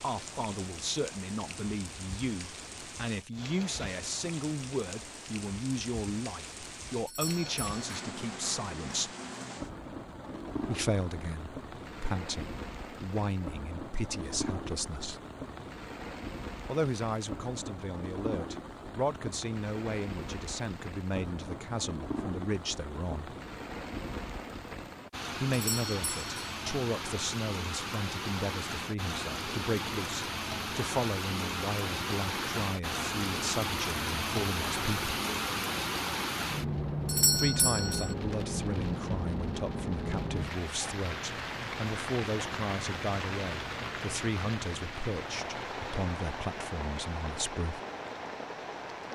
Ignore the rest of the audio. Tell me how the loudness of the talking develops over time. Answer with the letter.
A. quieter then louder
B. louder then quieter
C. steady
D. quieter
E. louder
C.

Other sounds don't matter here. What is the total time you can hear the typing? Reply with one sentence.
You can't hear the typing here.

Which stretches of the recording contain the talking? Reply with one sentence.
You can hear the talking from 0.0 to 9.1 s, from 10.7 to 15.2 s, from 16.6 to 23.4 s, from 25.4 to 35.1 s and from 37.4 to 47.8 s.